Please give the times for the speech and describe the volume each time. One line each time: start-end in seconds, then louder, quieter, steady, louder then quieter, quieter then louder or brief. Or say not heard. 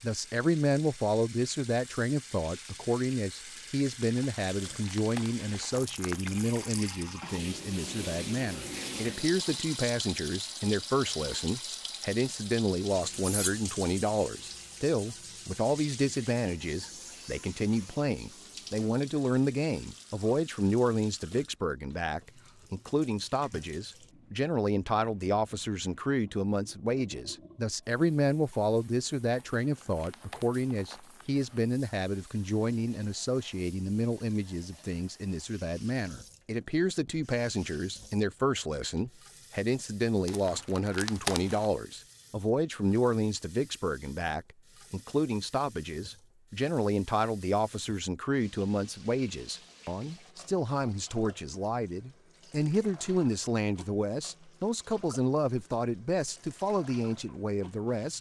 0.0-58.1 steady.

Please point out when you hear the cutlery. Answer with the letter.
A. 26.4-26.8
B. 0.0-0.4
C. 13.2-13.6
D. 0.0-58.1
C.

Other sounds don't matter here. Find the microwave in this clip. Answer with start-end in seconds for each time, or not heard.
not heard.